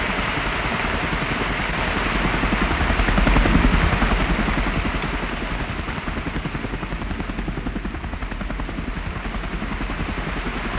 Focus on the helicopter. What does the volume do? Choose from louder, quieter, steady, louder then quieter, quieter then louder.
louder then quieter.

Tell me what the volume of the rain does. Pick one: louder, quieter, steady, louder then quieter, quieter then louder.
quieter.